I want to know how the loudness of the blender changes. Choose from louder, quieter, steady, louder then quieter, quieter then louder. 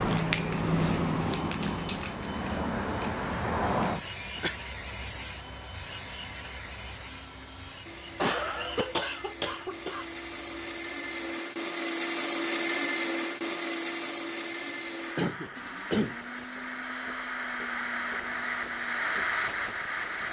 louder then quieter.